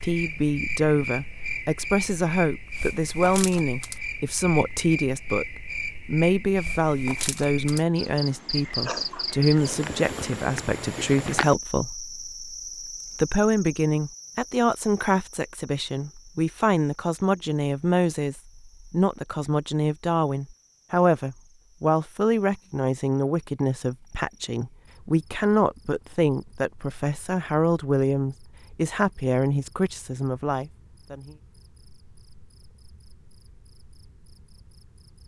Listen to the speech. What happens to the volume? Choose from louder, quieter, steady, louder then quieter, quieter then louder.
steady.